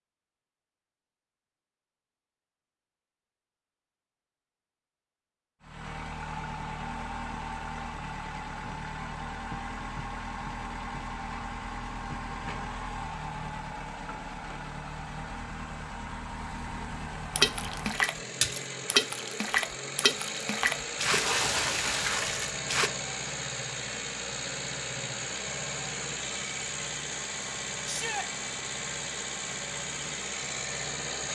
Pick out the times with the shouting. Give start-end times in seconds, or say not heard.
27.9-28.3.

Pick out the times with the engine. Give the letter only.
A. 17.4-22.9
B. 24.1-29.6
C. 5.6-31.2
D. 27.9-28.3
C.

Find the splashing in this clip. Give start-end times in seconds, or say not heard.
17.4-22.9.